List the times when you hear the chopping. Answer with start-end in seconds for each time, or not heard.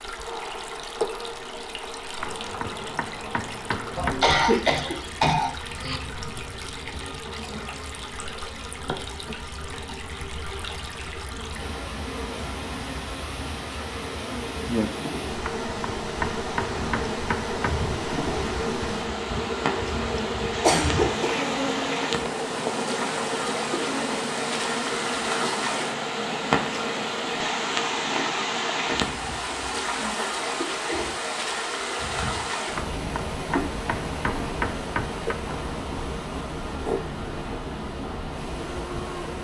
2.2-4.3, 15.4-17.8, 32.8-35.4.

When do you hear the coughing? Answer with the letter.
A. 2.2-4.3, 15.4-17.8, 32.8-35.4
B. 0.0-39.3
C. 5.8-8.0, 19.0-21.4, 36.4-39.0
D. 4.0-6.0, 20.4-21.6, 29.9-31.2
D.